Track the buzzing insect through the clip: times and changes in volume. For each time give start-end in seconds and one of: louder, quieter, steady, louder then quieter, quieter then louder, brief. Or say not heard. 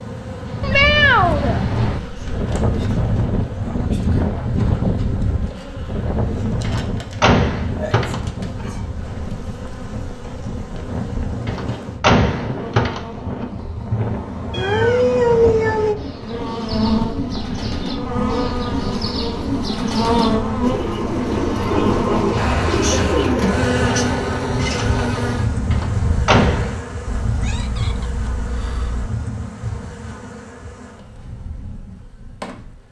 0.0-32.8 louder then quieter.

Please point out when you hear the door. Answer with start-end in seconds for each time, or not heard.
6.6-8.7, 11.4-13.4, 25.7-26.8.